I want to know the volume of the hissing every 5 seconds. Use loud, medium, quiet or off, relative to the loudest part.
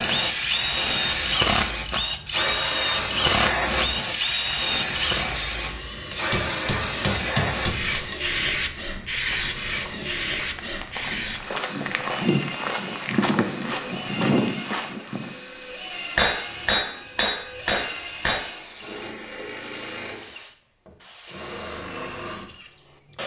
loud, loud, medium, quiet, quiet.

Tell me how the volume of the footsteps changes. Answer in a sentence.
The loudness of the footsteps goes up.